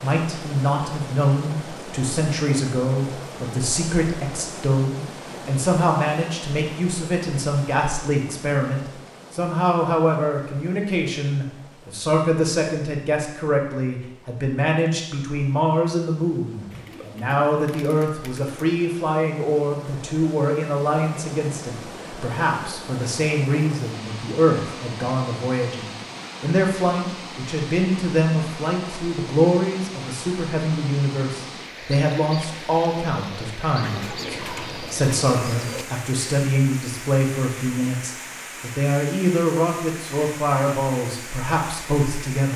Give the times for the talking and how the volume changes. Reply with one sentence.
You can hear the talking from 0.0 to 42.5 s, at a steady volume.